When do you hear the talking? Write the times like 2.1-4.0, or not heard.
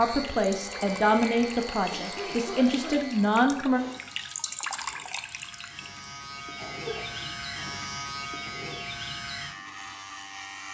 0.0-3.8.